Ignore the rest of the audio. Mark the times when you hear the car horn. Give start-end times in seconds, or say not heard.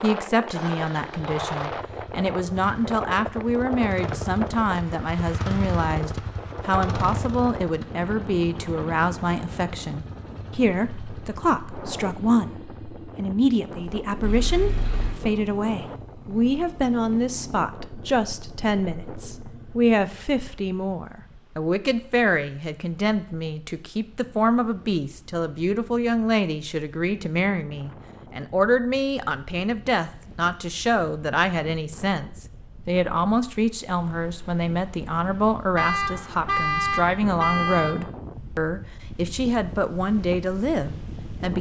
14.2-15.2, 35.8-38.0.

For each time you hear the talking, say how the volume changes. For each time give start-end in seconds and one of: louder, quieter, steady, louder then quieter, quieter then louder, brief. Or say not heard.
0.0-41.5 steady.